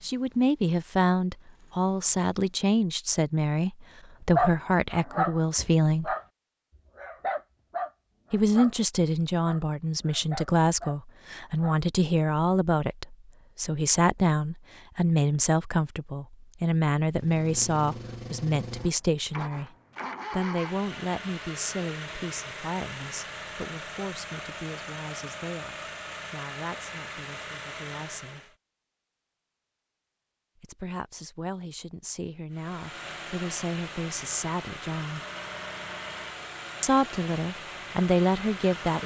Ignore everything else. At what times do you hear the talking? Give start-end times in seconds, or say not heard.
0.0-6.2, 8.3-19.7, 20.3-28.6, 30.6-35.2, 36.8-39.0.